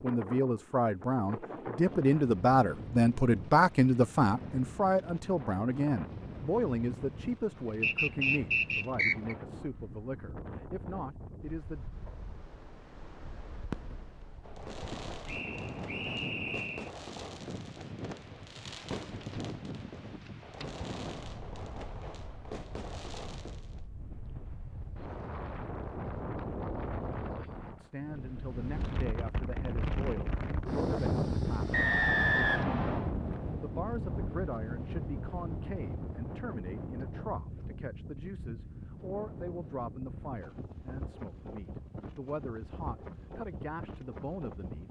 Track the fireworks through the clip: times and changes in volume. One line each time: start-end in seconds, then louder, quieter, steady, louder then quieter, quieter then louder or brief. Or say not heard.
13.7-23.9 steady.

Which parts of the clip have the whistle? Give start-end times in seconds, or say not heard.
7.8-9.3, 15.2-16.9, 31.7-33.1.